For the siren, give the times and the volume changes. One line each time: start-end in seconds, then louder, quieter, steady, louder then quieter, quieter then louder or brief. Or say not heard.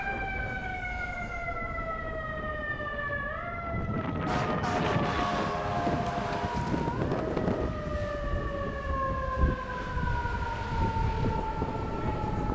0.0-12.4 steady.